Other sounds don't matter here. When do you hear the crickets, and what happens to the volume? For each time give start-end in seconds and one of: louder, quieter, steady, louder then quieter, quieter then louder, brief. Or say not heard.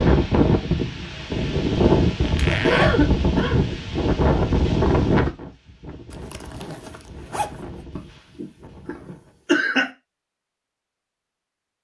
not heard.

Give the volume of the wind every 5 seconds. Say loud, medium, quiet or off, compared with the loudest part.
loud, medium, off.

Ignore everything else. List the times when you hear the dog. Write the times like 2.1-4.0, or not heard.
not heard.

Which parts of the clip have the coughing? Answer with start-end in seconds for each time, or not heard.
2.5-3.6, 8.0-9.8.